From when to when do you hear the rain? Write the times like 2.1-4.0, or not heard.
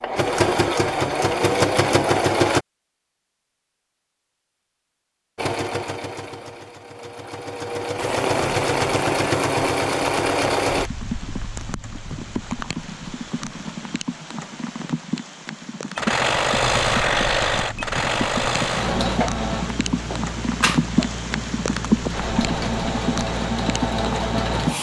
8.0-24.7.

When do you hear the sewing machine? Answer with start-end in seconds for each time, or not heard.
0.0-2.6, 5.3-10.9, 15.9-24.7.